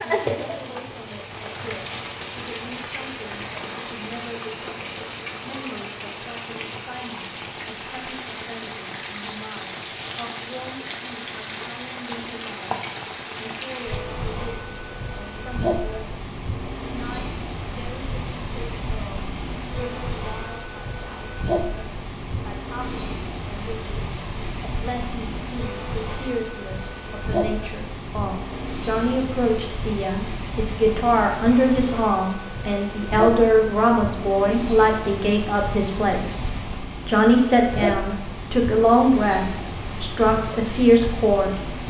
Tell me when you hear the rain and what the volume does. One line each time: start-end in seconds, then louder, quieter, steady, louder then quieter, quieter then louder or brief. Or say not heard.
0.0-41.8 steady.